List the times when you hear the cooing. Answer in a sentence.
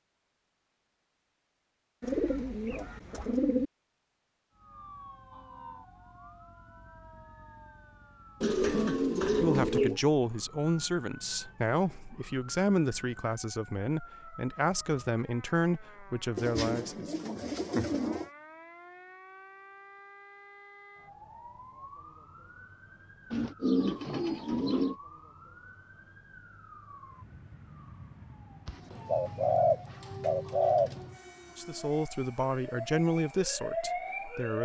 The cooing can be heard from 2.0 to 3.7 s, from 8.4 to 10.0 s, from 16.4 to 18.3 s, from 23.3 to 24.9 s and from 28.6 to 31.1 s.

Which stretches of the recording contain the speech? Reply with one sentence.
The speech can be heard from 9.3 to 17.1 s and from 31.6 to 34.6 s.